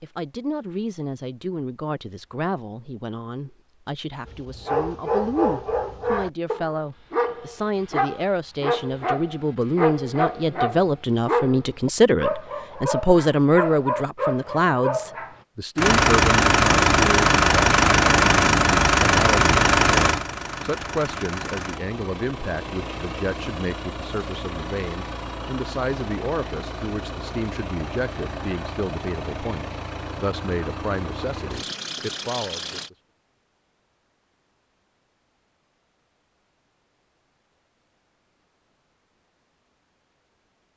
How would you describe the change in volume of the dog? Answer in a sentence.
The loudness of the dog stays about the same.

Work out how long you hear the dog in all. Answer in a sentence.
You can hear the dog for 11 seconds altogether.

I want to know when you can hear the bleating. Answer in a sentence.
The bleating can't be heard in this clip.